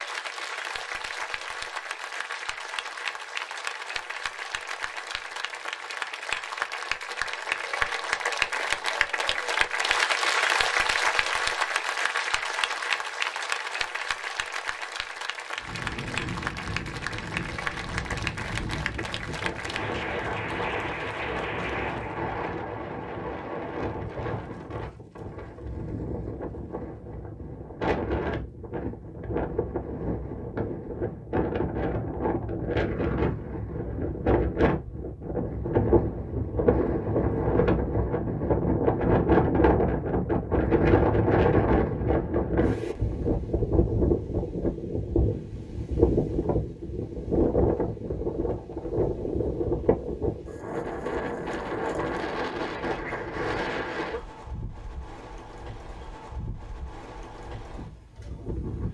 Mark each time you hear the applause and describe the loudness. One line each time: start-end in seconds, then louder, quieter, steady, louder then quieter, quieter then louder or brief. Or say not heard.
0.0-22.3 louder then quieter.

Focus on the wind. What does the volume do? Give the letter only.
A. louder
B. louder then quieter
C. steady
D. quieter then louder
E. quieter
B.